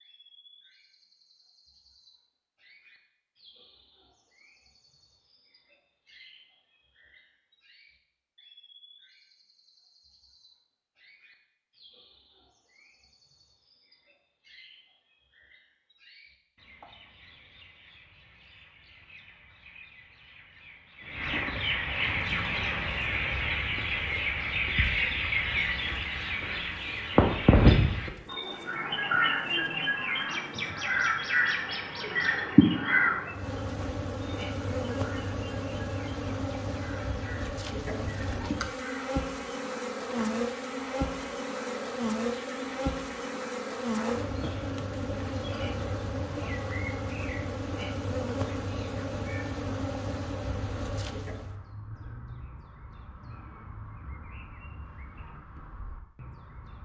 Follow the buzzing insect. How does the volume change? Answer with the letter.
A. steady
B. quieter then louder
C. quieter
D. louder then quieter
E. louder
E.